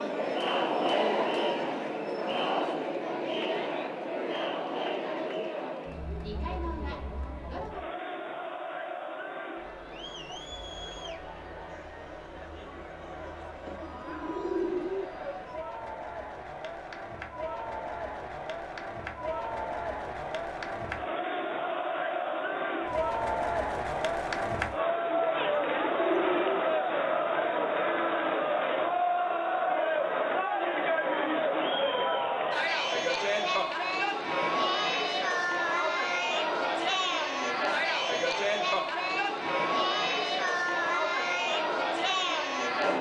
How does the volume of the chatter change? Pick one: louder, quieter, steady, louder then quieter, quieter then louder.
quieter then louder.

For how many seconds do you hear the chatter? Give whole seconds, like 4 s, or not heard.
43 s.